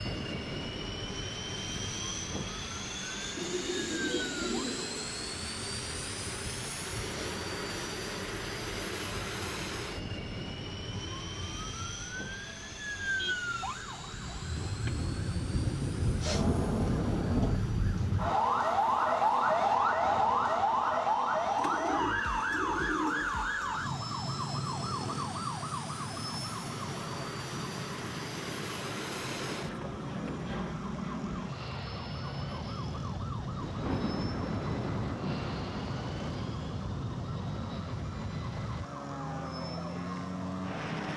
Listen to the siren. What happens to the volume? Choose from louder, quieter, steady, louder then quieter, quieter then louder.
louder then quieter.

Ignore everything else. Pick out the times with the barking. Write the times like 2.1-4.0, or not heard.
not heard.